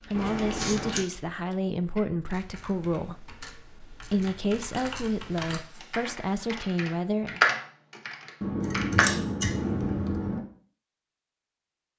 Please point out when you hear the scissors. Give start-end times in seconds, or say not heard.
0.1-1.1, 4.7-6.5, 8.4-10.4.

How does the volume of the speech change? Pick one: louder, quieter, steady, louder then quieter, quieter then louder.
steady.